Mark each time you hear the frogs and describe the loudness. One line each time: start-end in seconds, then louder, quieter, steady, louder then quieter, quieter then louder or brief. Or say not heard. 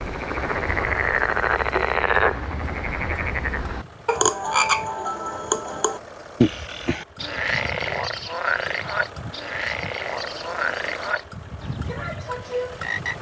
0.0-13.1 quieter.